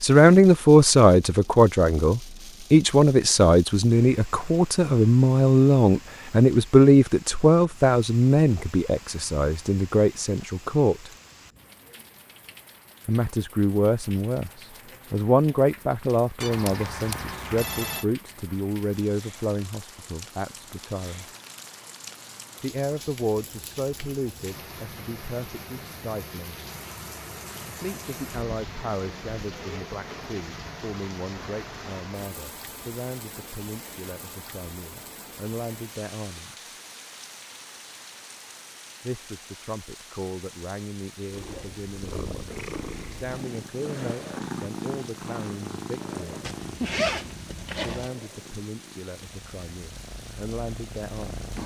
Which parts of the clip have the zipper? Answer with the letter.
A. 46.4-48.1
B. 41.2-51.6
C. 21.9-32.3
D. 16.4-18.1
A.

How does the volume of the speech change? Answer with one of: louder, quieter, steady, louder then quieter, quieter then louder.
quieter.